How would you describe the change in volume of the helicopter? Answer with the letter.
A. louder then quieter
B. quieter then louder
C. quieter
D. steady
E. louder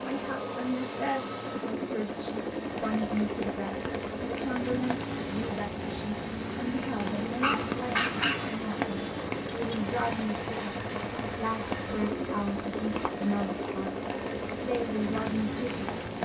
D.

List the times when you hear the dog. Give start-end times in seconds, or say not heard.
7.4-8.8.